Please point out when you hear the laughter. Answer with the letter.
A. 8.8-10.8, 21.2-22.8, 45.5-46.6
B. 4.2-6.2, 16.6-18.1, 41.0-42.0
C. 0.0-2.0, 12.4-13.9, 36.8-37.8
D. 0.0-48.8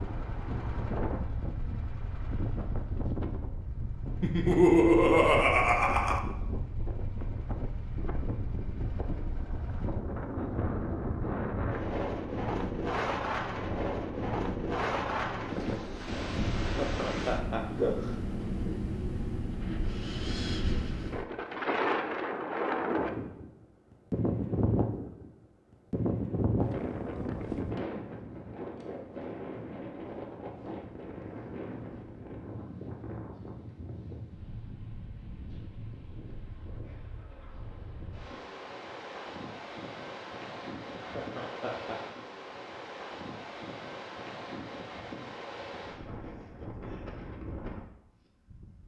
B.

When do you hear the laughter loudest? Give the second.
5 s.